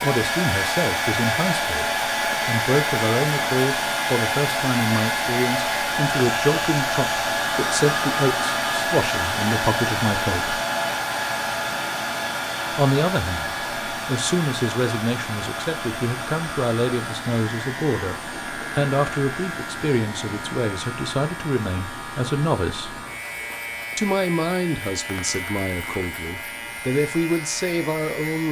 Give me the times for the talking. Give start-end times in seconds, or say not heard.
0.0-10.6, 12.7-23.1, 23.9-28.4.